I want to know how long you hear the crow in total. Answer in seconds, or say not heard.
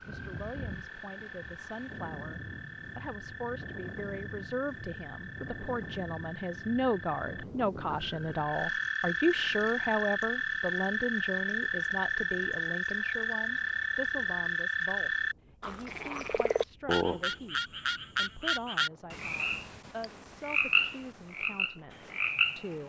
not heard.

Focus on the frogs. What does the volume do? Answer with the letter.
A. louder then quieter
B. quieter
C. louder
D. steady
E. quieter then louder
C.